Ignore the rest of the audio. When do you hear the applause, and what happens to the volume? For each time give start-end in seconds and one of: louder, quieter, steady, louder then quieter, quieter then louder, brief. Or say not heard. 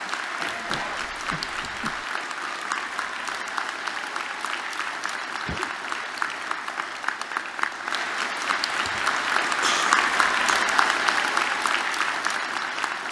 0.0-13.0 louder.